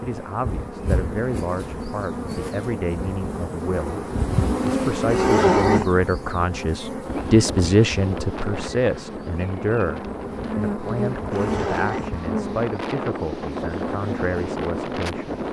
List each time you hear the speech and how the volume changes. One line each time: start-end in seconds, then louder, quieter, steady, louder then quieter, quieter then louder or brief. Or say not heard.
0.0-15.4 louder then quieter.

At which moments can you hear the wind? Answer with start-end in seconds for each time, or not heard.
7.0-15.4.